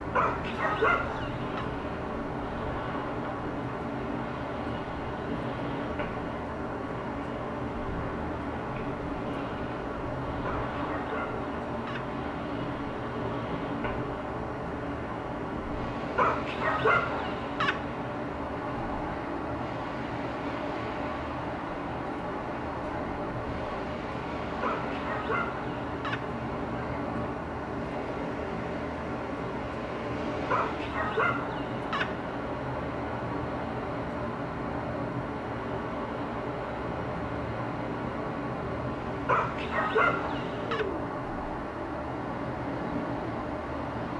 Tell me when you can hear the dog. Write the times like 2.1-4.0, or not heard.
0.1-1.6, 10.4-12.1, 16.1-17.8, 24.6-26.2, 30.5-32.1, 39.2-40.9.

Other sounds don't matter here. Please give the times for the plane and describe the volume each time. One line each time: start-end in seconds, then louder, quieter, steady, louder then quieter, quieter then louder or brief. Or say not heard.
0.0-44.1 steady.